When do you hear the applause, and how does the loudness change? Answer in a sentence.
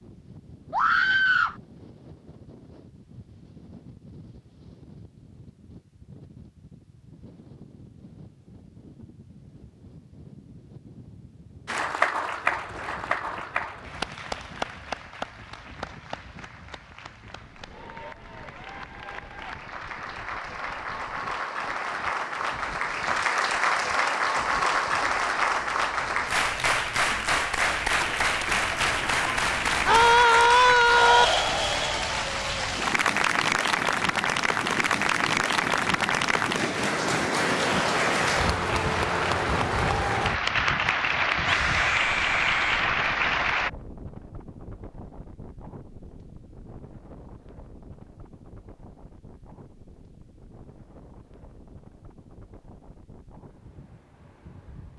The applause can be heard from 11.7 to 43.7 s, getting louder.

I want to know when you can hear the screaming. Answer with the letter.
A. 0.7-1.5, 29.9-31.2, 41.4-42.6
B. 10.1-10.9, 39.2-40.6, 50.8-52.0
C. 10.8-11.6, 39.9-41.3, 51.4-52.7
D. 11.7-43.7
A.